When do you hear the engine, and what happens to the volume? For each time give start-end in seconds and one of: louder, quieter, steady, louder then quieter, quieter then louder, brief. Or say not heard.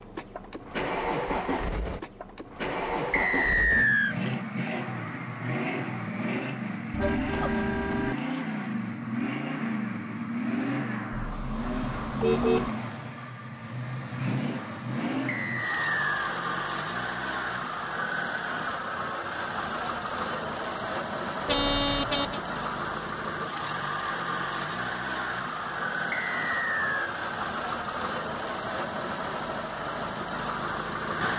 0.0-31.3 steady.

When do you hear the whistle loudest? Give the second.
4 s.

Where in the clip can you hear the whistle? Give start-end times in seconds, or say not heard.
3.1-4.2, 15.2-16.3, 26.1-27.1.